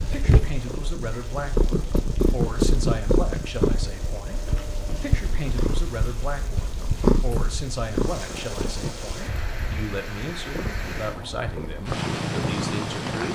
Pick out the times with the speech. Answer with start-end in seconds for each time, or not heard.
0.0-13.2.